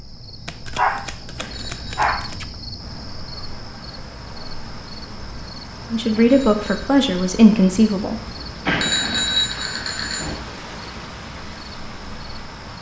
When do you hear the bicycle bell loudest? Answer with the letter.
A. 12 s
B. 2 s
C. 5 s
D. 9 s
D.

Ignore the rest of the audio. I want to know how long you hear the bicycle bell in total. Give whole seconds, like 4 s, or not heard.
3 s.